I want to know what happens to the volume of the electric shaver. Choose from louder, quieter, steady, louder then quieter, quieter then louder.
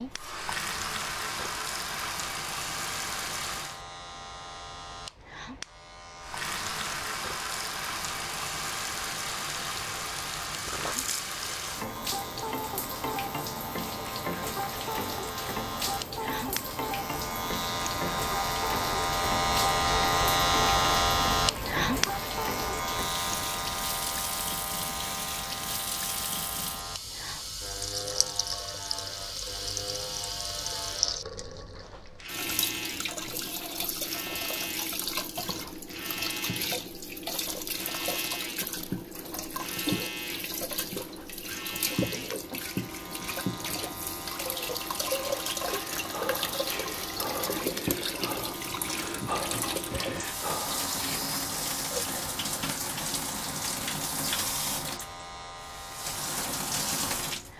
louder then quieter.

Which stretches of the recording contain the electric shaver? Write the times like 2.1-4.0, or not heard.
0.0-57.5.